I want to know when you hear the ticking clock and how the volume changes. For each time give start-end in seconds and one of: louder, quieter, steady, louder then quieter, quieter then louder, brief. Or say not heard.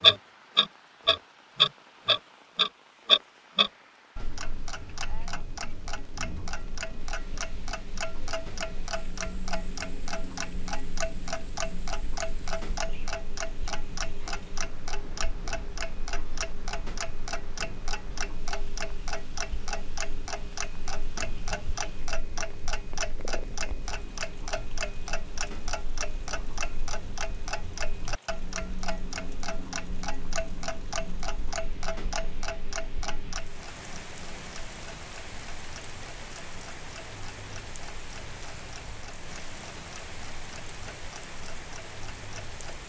0.0-42.8 quieter.